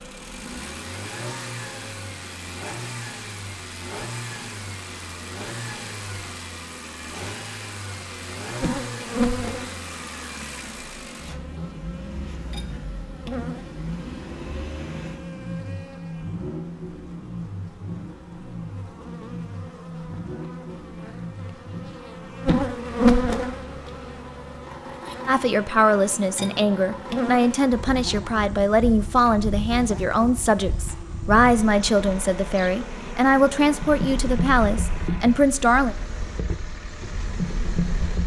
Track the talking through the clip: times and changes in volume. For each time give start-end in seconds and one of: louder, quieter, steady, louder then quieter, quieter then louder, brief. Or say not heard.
25.2-36.0 steady.